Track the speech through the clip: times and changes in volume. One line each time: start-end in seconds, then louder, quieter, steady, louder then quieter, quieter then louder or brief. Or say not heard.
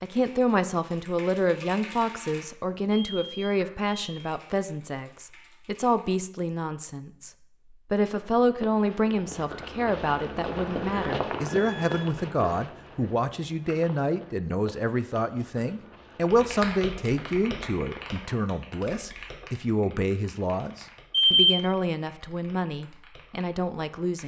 0.0-24.2 steady.